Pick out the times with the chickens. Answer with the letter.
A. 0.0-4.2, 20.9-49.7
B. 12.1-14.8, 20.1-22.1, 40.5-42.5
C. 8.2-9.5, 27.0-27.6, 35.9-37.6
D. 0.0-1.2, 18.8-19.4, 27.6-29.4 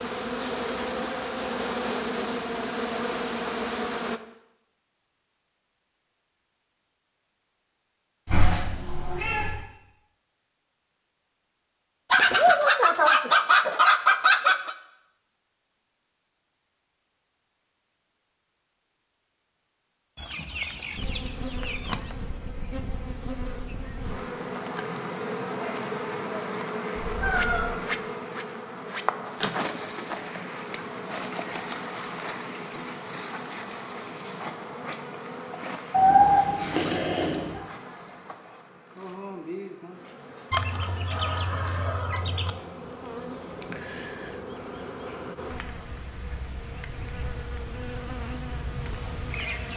B.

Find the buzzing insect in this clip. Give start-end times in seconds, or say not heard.
0.0-4.2, 20.9-49.7.